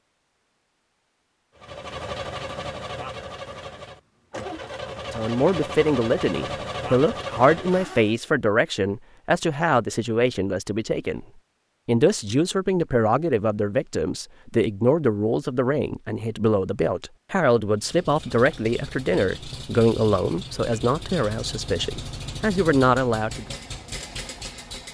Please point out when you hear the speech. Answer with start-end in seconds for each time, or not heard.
5.1-11.2, 11.8-23.6.